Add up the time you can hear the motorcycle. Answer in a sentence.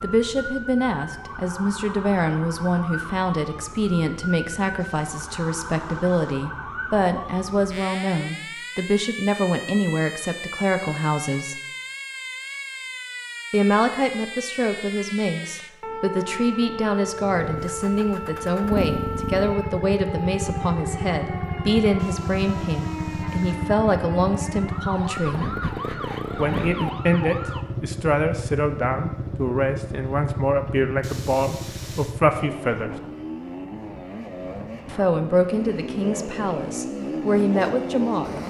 The motorcycle can be heard for 21 seconds in total.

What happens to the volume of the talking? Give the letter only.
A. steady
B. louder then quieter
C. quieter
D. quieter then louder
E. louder
A.